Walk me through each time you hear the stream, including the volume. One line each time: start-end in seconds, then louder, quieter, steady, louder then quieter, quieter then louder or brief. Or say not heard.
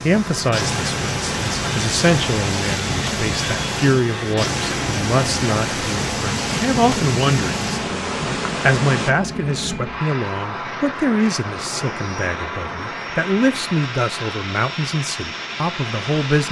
0.0-9.1 steady.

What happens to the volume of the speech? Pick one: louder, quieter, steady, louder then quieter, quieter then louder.
steady.